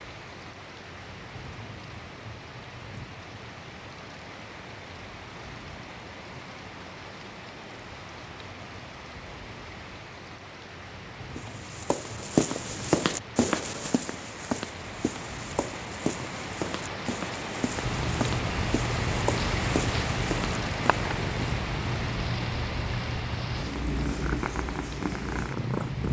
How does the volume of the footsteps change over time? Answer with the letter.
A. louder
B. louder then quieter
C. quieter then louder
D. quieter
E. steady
D.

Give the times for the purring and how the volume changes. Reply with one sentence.
You can hear the purring from 17.8 to 26.0 s, at a steady volume.